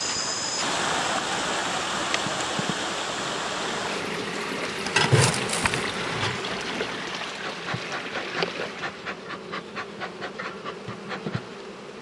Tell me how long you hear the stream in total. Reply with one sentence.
The stream can be heard for 9 seconds in total.